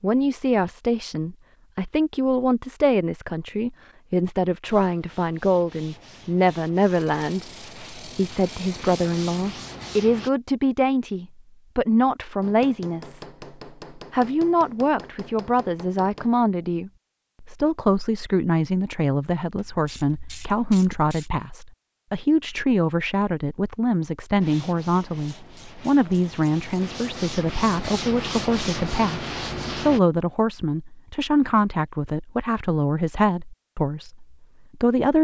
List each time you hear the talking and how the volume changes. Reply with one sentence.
The talking can be heard from 0.0 to 13.2 s, at a steady volume; and from 13.9 to 35.1 s, at a steady volume.